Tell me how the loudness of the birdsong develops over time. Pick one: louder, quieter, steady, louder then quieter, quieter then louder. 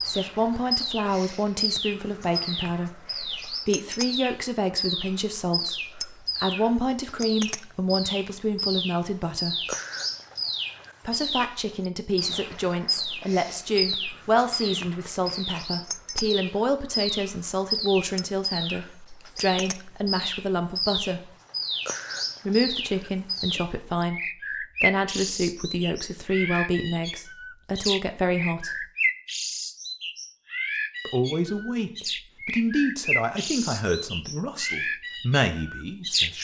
steady.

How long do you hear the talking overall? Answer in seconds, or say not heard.
31 s.